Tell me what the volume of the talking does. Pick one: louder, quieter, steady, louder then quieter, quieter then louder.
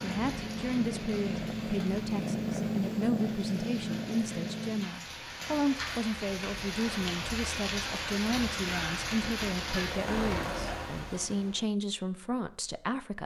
steady.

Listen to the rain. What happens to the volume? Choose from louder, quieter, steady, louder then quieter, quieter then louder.
louder.